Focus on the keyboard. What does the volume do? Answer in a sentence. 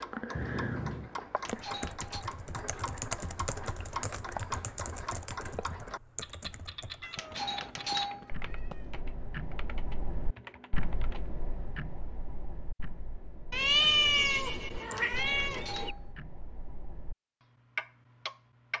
The volume of the keyboard goes down.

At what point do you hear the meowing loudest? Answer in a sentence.
The volume of the meowing peaks at 14 seconds.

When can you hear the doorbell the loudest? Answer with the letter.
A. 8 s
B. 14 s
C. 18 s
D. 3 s
A.